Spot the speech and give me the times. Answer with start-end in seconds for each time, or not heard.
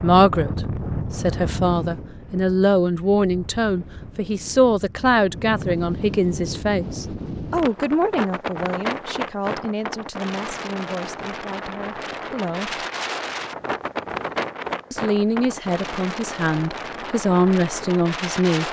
0.0-12.8, 14.9-18.6.